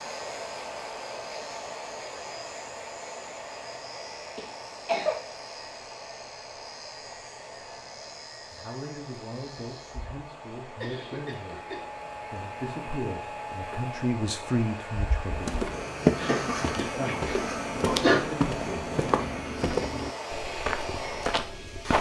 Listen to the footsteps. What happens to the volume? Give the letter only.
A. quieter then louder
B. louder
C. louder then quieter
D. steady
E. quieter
E.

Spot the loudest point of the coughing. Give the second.
18 s.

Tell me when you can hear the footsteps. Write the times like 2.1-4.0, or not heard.
15.3-21.9.